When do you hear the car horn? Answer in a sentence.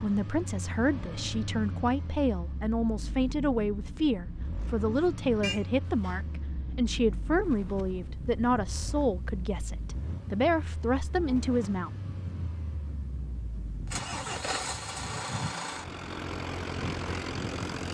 The car horn can be heard from 5.4 to 6.2 s.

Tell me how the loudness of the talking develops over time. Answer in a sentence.
The volume of the talking stays about the same.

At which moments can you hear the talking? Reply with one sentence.
The talking can be heard from 0.0 to 11.9 s.